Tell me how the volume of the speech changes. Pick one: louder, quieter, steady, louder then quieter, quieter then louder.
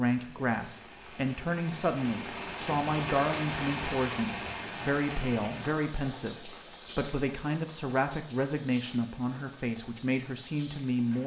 steady.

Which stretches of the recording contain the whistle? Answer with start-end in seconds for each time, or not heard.
not heard.